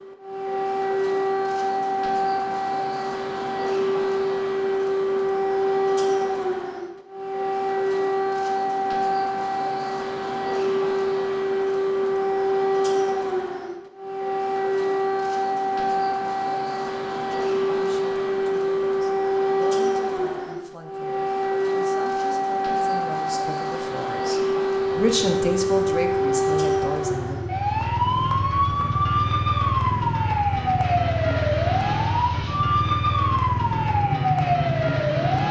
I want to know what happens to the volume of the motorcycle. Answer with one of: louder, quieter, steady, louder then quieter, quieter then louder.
louder.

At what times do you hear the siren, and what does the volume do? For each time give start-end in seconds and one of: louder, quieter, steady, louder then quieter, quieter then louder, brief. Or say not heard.
0.0-35.4 steady.